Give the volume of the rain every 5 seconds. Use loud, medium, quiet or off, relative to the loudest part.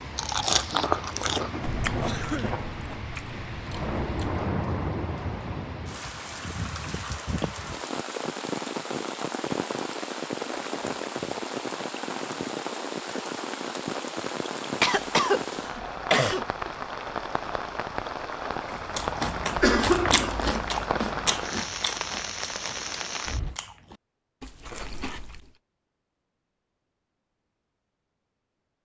loud, loud, loud, loud, loud, off.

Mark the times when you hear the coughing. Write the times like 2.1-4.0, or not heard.
2.0-2.6, 14.8-16.4, 19.6-20.5.